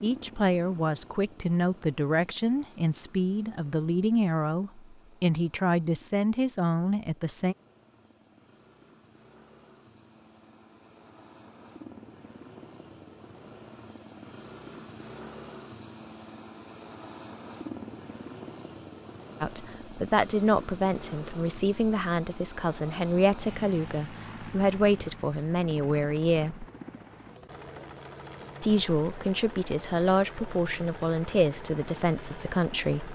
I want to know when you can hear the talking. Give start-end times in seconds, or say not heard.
0.0-7.5, 19.4-26.6, 28.6-33.0.